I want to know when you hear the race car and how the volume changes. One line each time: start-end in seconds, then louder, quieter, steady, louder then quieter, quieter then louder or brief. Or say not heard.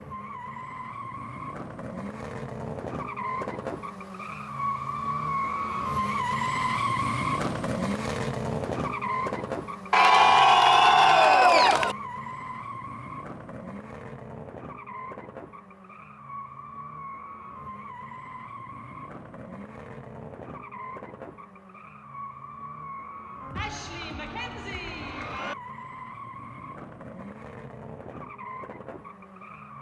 0.0-29.7 quieter.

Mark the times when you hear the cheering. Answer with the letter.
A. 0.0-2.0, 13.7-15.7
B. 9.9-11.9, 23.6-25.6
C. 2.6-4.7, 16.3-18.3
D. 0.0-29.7
B.